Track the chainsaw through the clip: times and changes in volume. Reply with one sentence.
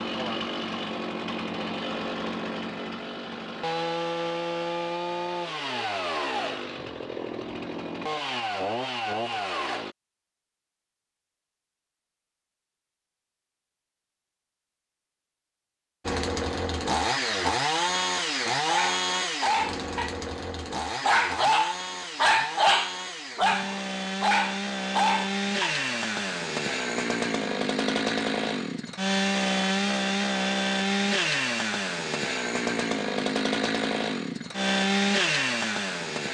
The chainsaw can be heard from 0.0 to 9.9 s, at a steady volume; and from 16.1 to 36.2 s, getting quieter then louder.